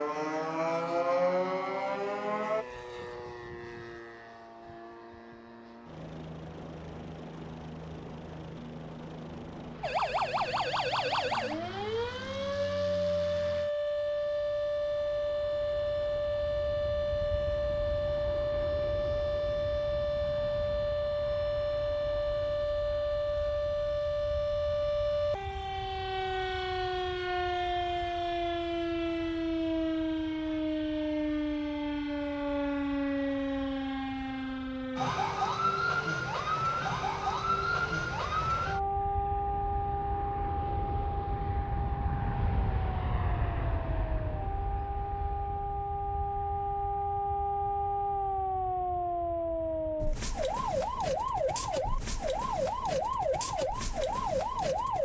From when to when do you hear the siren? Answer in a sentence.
You can hear the siren from 0.0 to 2.6 s and from 9.8 to 55.0 s.